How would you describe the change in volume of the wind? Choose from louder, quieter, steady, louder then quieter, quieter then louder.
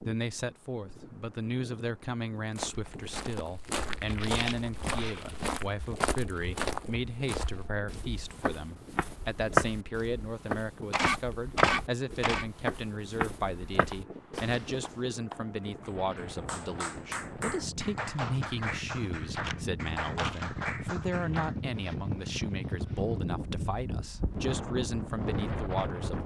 louder.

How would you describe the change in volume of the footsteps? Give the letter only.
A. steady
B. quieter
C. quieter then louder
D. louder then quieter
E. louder
D.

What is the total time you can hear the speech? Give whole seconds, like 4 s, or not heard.
26 s.